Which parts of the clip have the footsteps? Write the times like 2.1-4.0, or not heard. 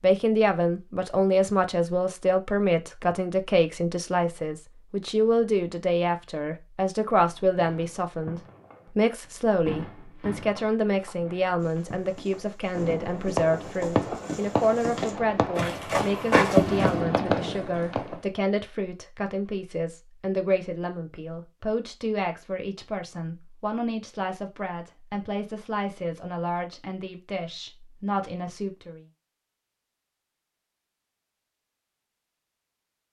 10.4-16.9.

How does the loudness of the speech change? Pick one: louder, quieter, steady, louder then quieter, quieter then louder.
quieter.